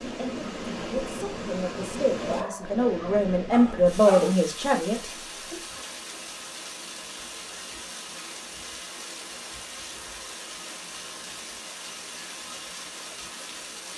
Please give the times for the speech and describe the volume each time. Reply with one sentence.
The speech can be heard from 0.0 to 5.7 s, getting louder then quieter.